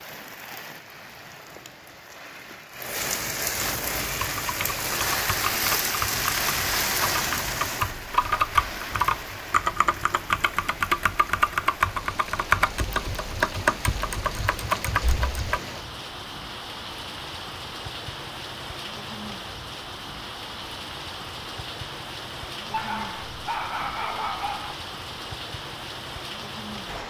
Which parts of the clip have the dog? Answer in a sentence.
The dog can be heard from 22.7 to 24.8 s.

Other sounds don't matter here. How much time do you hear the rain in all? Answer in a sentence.
You can hear the rain for 27 seconds altogether.